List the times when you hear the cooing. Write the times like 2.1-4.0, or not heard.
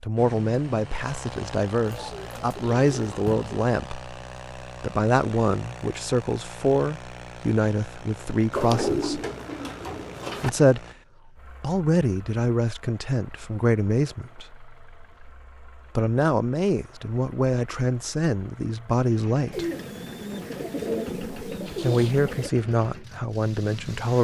1.9-3.5, 8.5-10.5, 19.5-22.5.